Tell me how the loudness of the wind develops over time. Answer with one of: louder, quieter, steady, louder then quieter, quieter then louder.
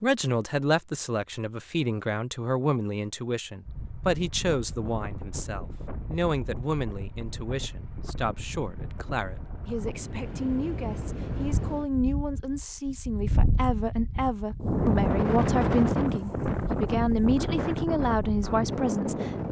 louder.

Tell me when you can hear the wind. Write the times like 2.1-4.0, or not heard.
3.6-19.4.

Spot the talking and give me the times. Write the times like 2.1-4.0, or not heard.
0.0-19.4.